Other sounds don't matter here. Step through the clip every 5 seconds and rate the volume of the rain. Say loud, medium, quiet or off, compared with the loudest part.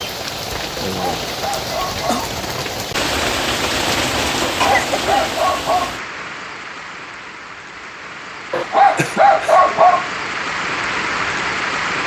loud, medium, loud.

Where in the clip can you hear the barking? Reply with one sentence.
You can hear the barking from 0.8 to 2.3 s, from 4.5 to 6.0 s and from 8.5 to 10.1 s.